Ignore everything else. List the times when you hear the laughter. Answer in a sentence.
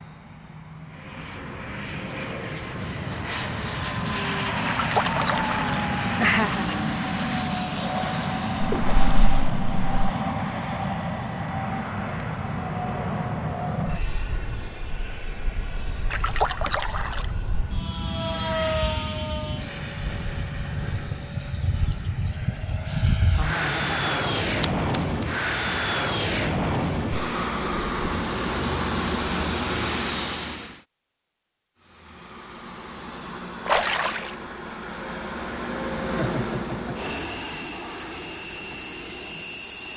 You can hear the laughter from 6.2 to 6.9 s, from 23.4 to 24.4 s and from 36.1 to 37.1 s.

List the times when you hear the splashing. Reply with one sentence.
You can hear the splashing from 4.7 to 5.8 s, from 8.6 to 9.9 s, from 16.1 to 17.2 s, from 24.6 to 25.2 s and from 33.6 to 34.3 s.